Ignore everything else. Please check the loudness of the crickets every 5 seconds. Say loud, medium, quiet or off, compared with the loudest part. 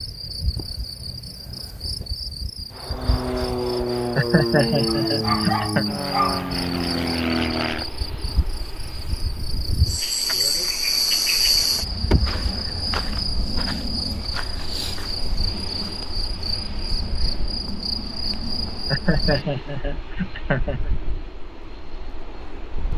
medium, medium, loud, medium, off.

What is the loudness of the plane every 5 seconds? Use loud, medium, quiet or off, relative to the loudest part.
loud, loud, quiet, quiet, quiet.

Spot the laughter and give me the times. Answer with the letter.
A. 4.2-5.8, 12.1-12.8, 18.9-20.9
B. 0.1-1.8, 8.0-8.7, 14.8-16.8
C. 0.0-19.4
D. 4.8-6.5
A.